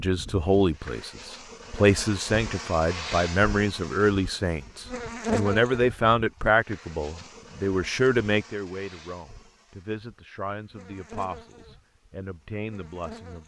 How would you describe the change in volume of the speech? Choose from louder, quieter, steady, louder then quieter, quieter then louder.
quieter.